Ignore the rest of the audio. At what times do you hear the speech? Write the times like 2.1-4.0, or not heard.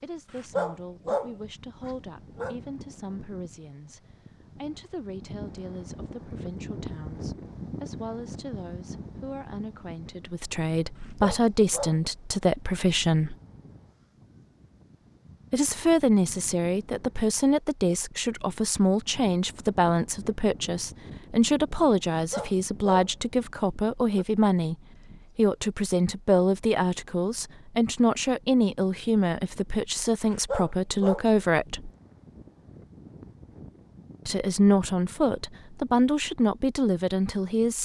0.0-13.3, 15.5-24.8, 25.4-31.9, 34.2-37.8.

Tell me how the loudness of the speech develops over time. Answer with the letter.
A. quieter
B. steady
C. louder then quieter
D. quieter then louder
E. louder
E.